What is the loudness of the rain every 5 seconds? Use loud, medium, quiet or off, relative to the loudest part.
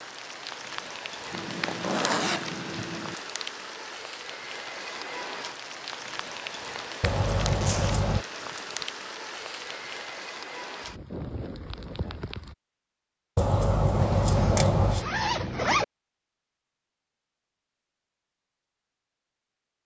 loud, loud, loud, off.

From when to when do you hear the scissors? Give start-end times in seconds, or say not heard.
7.0-8.2, 13.3-15.1.